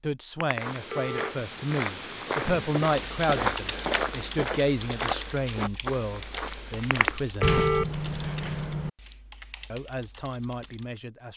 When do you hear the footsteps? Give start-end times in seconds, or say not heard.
0.5-7.3.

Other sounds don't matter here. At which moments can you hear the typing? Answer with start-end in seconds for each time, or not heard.
2.8-11.0.